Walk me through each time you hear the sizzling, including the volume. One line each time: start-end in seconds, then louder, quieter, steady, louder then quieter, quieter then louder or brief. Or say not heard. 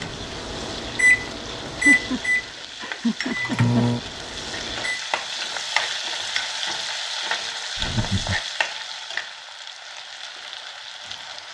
0.0-11.4 louder then quieter.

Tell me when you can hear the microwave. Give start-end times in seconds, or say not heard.
0.0-5.0.